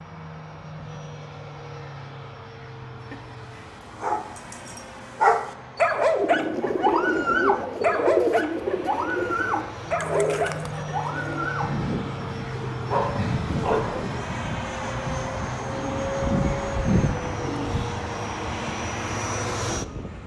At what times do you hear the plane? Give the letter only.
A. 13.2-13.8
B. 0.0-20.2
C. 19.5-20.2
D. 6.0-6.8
B.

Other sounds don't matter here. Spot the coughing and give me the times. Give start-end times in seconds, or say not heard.
13.2-13.8.